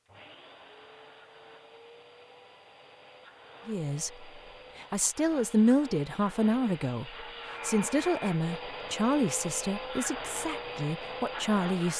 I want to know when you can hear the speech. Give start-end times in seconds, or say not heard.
3.6-11.9.